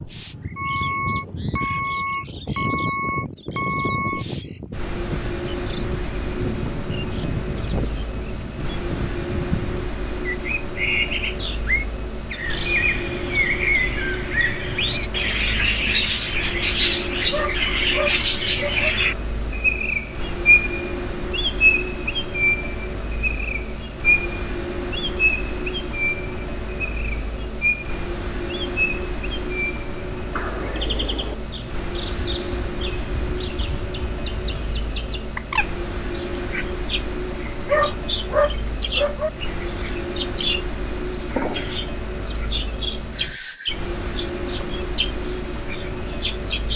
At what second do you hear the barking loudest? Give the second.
38 s.